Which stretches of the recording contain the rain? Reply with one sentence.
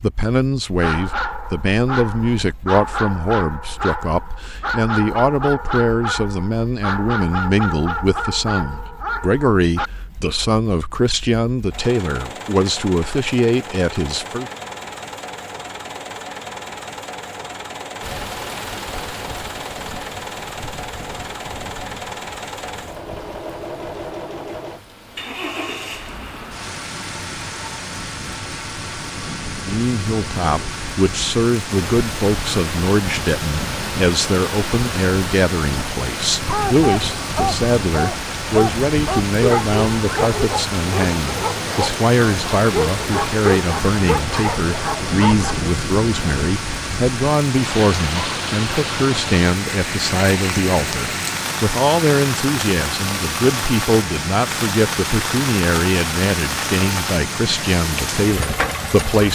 The rain can be heard from 18.0 to 59.3 s.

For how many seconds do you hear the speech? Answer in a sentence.
The speech can be heard for 44 seconds in total.